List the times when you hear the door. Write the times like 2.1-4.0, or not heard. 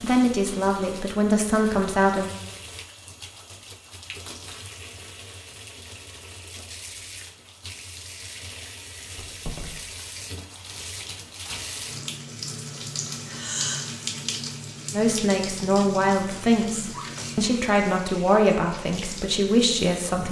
9.2-10.0.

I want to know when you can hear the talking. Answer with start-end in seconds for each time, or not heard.
0.0-2.3, 14.9-20.2.